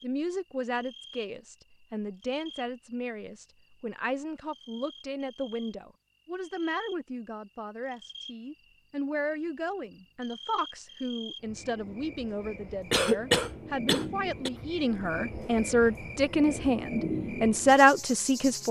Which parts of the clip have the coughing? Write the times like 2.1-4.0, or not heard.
12.9-14.5.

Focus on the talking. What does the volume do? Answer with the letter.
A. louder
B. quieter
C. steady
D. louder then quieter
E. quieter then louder
A.